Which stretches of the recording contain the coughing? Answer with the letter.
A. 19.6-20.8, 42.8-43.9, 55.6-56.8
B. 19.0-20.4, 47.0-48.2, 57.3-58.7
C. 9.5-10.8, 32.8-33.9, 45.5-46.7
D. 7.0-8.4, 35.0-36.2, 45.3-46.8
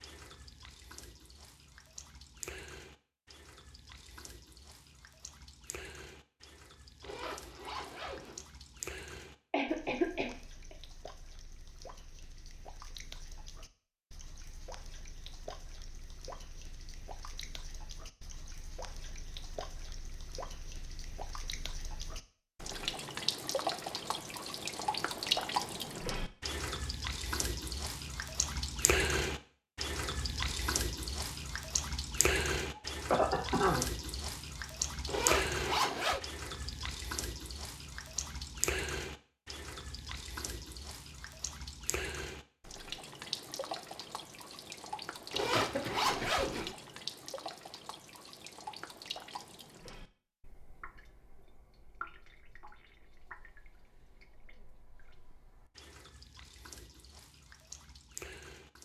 C.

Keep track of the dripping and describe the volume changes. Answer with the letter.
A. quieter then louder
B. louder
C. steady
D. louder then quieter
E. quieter
D.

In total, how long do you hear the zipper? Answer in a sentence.
The zipper can be heard for 4 seconds in total.